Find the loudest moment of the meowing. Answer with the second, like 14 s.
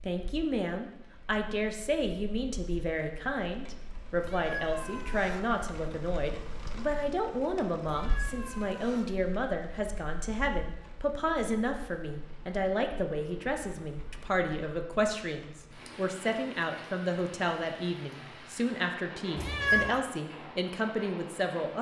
20 s.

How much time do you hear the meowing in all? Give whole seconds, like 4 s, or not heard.
3 s.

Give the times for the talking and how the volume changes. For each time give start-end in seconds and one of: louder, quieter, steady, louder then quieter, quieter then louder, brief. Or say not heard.
0.1-21.7 steady.